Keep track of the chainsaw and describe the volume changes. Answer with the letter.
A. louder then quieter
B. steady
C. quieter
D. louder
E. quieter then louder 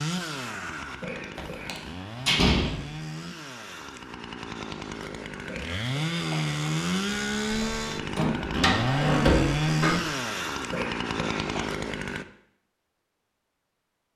D.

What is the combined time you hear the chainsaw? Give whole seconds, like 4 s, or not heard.
12 s.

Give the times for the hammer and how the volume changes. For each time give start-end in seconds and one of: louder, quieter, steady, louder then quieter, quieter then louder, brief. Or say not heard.
not heard.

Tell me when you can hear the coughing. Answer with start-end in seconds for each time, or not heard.
0.8-1.8, 5.3-6.7, 10.6-11.7.